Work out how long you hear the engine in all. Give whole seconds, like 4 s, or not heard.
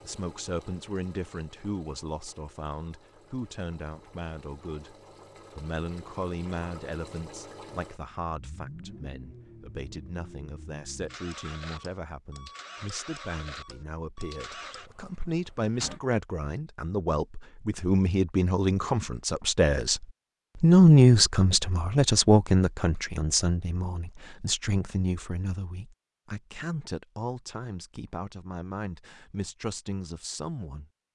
16 s.